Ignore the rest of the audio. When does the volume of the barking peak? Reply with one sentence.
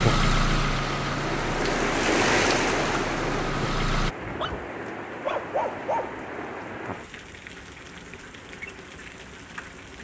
The loudest moment of the barking is at 5 seconds.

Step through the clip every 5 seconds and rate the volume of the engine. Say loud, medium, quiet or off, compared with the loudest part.
loud, off.